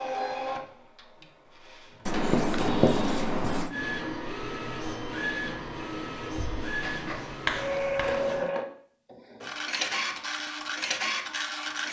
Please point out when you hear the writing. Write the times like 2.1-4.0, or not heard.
2.0-3.7, 6.8-8.4.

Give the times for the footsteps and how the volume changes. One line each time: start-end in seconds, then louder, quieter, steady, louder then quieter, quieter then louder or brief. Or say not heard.
not heard.